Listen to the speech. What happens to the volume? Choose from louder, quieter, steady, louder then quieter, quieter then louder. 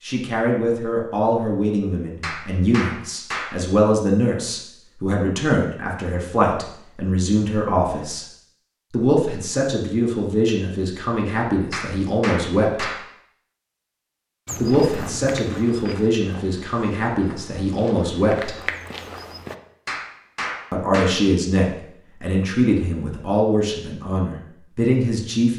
steady.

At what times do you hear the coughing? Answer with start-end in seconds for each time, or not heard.
not heard.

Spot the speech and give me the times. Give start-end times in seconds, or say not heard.
0.0-8.2, 8.9-12.9, 14.6-18.6, 20.7-25.5.